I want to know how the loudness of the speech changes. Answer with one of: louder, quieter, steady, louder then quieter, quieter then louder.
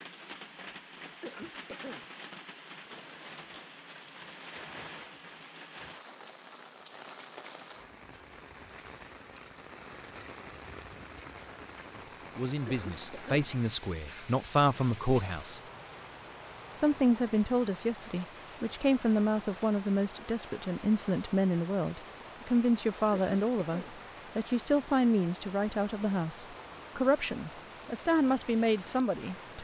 steady.